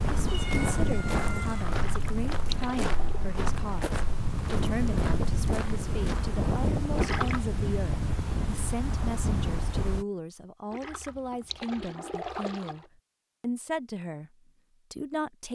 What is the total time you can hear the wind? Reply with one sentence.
The wind can be heard for 10 seconds in total.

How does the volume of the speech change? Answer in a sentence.
The volume of the speech stays about the same.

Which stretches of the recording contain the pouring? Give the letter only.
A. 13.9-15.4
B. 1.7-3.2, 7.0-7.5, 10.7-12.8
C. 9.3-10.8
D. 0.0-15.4
B.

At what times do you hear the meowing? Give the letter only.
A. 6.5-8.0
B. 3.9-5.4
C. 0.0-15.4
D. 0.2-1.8
D.